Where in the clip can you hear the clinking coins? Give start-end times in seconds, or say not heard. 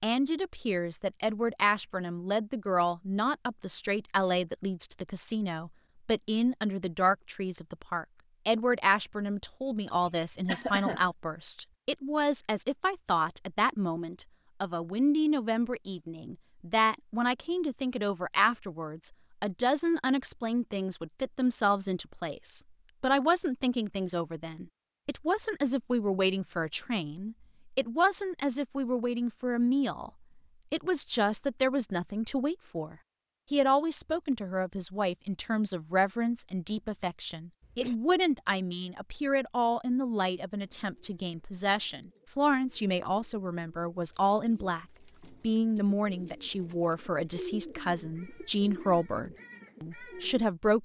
not heard.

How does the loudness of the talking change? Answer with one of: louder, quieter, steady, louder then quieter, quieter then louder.
steady.